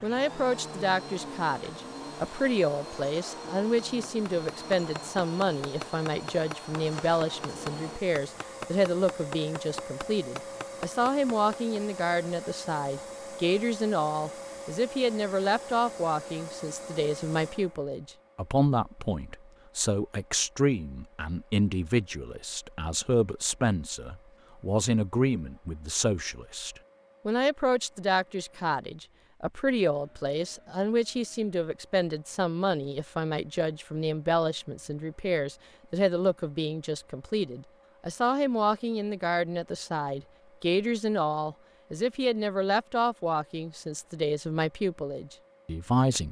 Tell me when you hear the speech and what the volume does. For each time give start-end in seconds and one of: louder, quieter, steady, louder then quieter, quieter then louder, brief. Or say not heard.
0.0-46.2 steady.